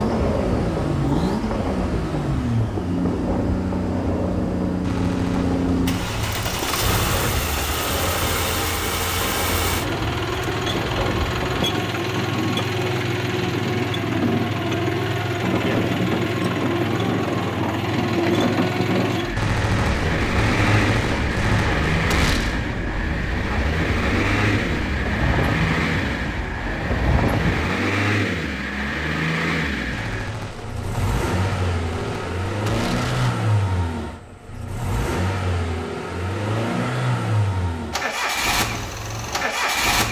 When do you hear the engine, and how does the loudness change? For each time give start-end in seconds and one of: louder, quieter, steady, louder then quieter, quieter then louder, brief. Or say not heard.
0.0-40.0 steady.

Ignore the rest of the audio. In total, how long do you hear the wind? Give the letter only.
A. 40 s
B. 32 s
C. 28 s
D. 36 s
C.